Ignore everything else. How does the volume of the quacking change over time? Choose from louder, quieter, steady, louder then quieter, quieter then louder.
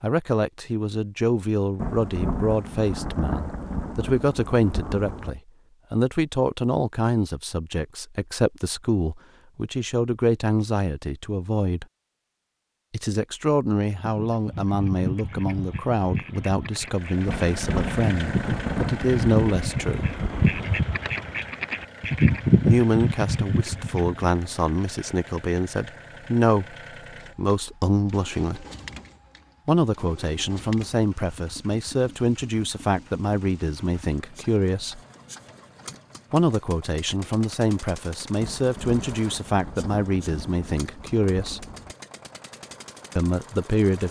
louder.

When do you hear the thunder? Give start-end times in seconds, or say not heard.
1.8-5.3, 17.2-20.8, 38.4-42.0.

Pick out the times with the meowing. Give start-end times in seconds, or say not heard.
not heard.